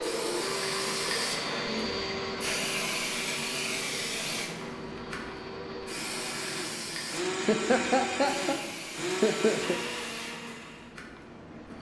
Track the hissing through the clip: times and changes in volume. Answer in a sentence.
You can hear the hissing from 0.0 to 11.7 s, getting quieter.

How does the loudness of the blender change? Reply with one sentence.
The volume of the blender goes down, then up.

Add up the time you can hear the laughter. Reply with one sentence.
You can hear the laughter for 2 seconds altogether.